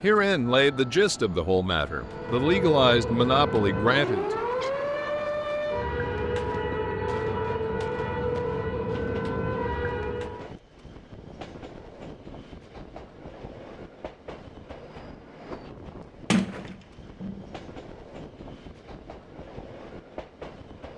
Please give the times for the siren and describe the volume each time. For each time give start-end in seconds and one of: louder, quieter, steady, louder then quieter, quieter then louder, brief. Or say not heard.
2.0-10.6 steady.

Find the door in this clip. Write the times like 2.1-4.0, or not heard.
16.3-17.4.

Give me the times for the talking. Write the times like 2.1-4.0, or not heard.
0.0-4.4.